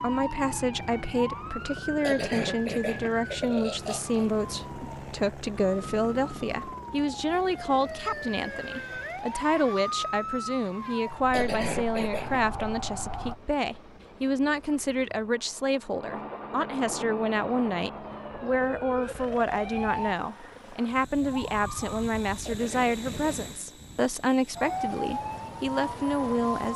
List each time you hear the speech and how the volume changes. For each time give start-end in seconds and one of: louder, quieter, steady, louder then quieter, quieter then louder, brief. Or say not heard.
0.0-26.7 steady.